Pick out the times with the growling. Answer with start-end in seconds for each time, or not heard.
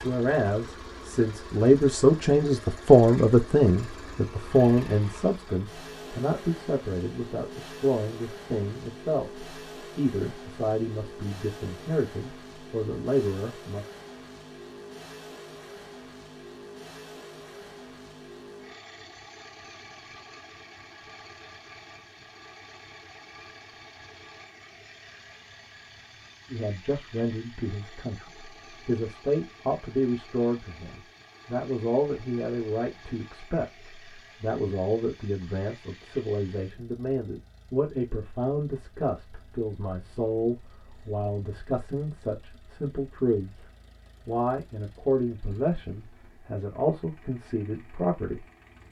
not heard.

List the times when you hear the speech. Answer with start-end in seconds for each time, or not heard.
0.0-13.8, 26.5-43.6, 44.2-48.5.